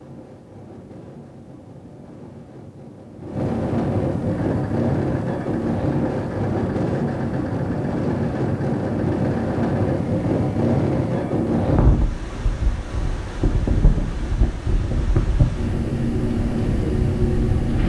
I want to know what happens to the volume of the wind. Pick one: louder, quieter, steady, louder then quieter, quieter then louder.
louder.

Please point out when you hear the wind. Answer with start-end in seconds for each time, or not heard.
0.0-17.8.